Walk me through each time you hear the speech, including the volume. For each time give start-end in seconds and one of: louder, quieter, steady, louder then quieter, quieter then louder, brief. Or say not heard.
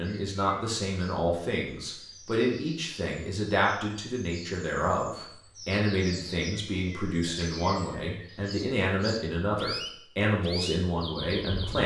0.0-11.8 steady.